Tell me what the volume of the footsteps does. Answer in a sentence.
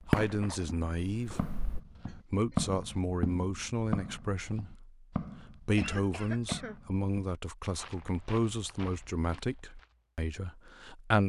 The loudness of the footsteps goes down.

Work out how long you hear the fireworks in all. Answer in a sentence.
The fireworks can be heard for 2 seconds in total.